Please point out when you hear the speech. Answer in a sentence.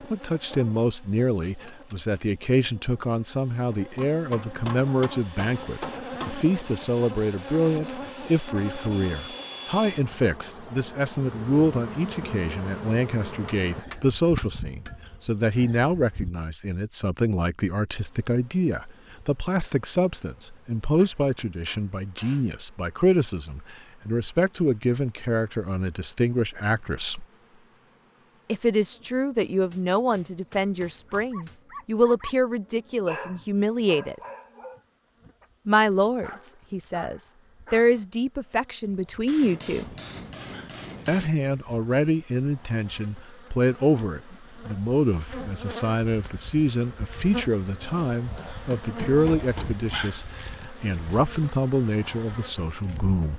The speech can be heard from 0.1 to 27.2 s, from 28.4 to 34.2 s, from 35.6 to 39.9 s and from 41.0 to 53.3 s.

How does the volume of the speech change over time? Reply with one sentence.
The volume of the speech stays about the same.